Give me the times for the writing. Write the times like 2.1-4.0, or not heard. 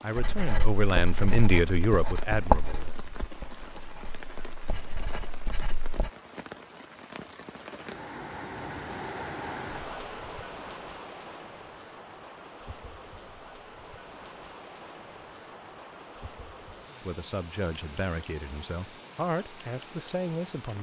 0.1-6.1.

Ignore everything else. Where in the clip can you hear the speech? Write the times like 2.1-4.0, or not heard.
0.0-3.0, 17.0-20.7.